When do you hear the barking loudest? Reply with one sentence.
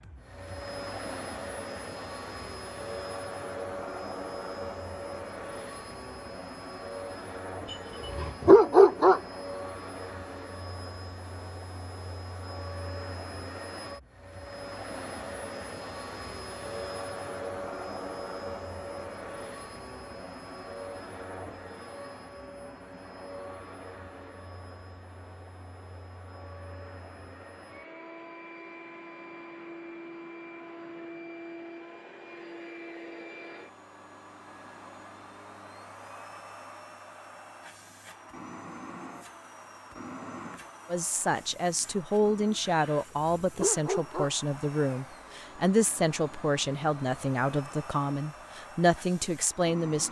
The loudest moment of the barking is at 9 seconds.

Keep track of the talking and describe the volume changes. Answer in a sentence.
The volume of the talking stays about the same.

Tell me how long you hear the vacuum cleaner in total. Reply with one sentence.
You can hear the vacuum cleaner for 50 seconds altogether.